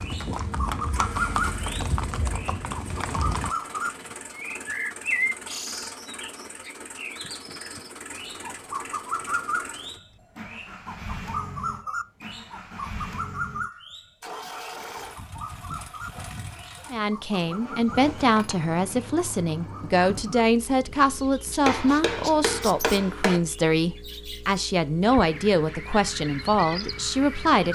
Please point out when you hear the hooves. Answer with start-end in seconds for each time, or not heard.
0.0-3.5.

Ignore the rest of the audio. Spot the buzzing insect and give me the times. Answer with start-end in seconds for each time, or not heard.
not heard.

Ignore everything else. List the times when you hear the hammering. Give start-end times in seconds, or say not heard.
21.6-23.4.